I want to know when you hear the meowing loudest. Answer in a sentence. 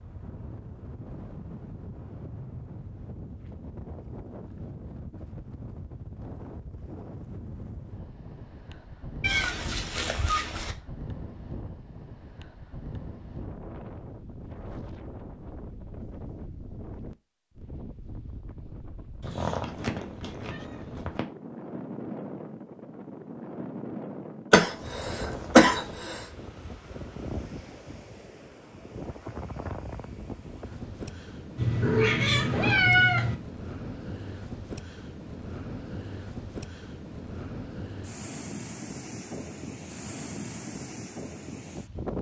The volume of the meowing peaks at 33 seconds.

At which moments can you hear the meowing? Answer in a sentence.
The meowing can be heard from 9.2 to 10.8 s, from 19.2 to 21.2 s and from 31.6 to 33.4 s.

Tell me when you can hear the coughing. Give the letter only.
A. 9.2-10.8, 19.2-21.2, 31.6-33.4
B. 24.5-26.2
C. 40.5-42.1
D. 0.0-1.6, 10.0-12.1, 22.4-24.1
B.